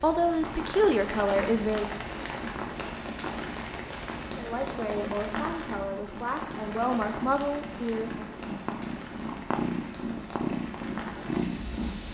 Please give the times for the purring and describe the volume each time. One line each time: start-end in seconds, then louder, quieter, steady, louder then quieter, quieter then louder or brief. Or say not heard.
0.2-12.0 louder.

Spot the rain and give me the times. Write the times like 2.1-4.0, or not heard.
0.0-12.0.